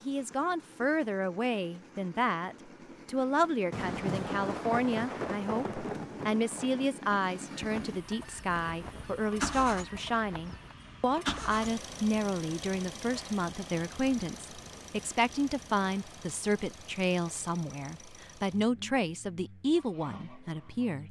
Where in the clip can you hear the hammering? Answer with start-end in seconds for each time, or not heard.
not heard.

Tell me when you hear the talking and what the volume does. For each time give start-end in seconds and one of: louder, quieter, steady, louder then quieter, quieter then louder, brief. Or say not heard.
0.1-21.0 steady.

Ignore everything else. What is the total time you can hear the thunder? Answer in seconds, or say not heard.
3 s.